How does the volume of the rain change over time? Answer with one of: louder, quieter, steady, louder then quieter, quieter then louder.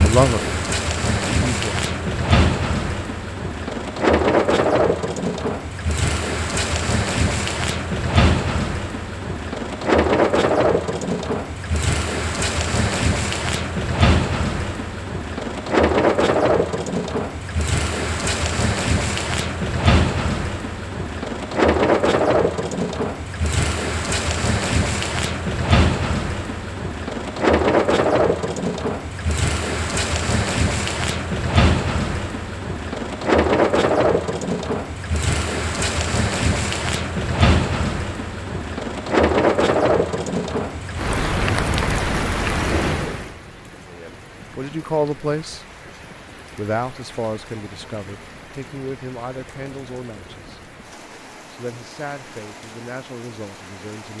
quieter.